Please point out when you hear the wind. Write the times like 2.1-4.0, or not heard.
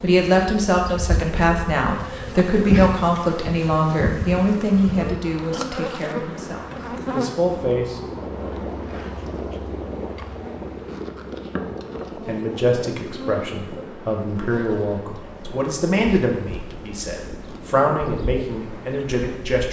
6.1-19.6.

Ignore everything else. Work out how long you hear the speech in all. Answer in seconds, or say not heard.
15 s.